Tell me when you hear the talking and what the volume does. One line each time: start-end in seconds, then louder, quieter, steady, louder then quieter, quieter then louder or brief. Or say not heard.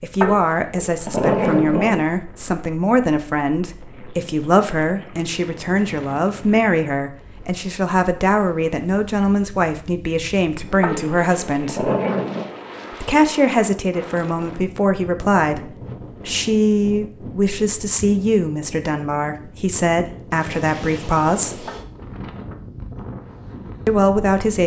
0.0-11.9 steady
12.9-21.7 steady
23.9-24.6 brief.